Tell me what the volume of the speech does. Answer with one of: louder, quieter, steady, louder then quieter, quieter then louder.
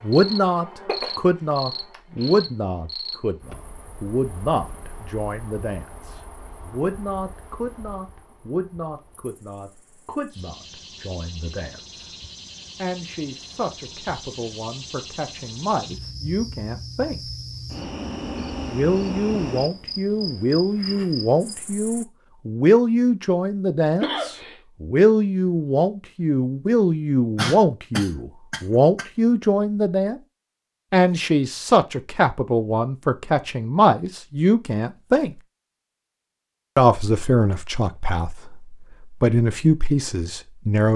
quieter then louder.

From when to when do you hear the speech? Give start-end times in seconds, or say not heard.
0.0-12.2, 12.8-17.2, 18.7-30.2, 30.9-35.4, 36.8-40.9.